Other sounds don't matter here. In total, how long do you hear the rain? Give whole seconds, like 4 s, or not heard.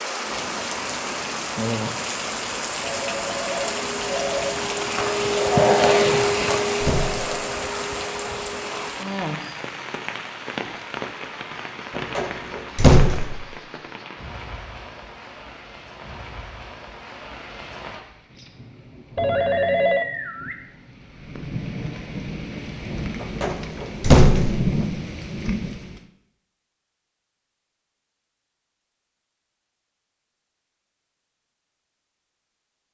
26 s.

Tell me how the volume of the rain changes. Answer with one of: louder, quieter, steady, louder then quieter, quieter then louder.
quieter then louder.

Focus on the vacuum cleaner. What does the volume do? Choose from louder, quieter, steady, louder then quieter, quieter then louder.
louder then quieter.